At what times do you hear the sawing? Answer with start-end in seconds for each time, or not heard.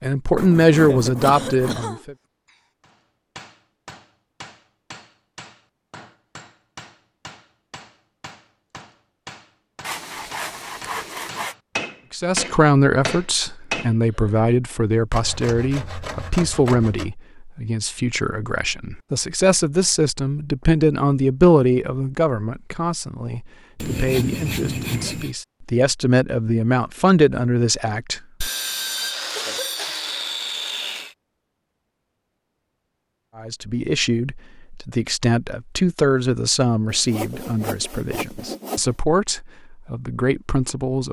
0.3-1.9, 9.8-11.6, 15.1-17.1, 23.8-25.4, 28.4-31.1, 36.9-39.0.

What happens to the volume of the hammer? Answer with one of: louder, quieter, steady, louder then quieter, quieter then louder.
louder.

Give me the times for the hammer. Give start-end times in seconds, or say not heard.
2.8-13.9.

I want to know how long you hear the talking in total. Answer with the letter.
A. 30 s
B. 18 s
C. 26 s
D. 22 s
C.